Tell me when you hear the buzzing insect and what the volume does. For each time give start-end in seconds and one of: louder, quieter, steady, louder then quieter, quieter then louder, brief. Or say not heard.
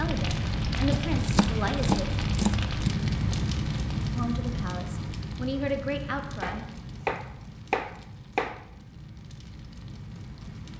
not heard.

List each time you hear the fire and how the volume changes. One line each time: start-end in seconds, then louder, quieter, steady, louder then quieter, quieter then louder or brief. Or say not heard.
0.0-10.7 quieter.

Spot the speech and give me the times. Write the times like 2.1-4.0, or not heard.
0.0-2.0, 4.1-6.7.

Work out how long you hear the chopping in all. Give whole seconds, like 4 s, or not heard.
4 s.